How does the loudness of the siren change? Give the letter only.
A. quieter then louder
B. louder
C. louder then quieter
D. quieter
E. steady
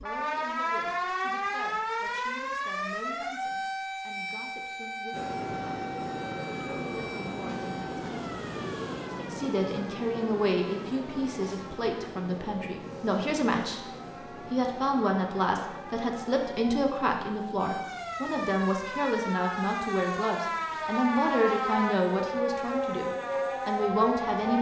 A.